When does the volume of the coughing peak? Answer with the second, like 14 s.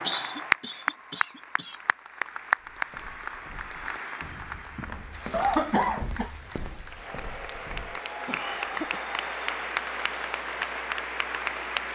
6 s.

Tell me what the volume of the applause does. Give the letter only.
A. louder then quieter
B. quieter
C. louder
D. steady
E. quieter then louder
E.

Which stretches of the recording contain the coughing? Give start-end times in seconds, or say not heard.
0.1-1.8, 5.3-6.3, 8.2-9.1.